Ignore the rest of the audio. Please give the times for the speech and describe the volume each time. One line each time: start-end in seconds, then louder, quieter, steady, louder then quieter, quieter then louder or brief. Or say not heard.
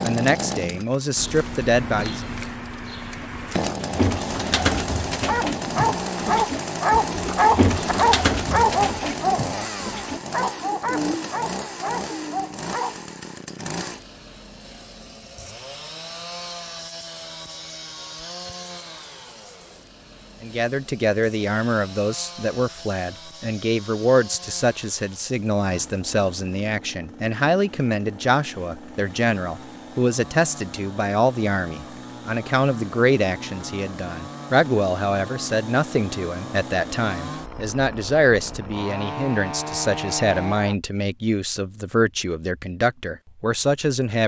0.0-2.2 brief
20.4-44.2 steady.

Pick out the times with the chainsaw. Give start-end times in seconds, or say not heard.
0.0-40.8.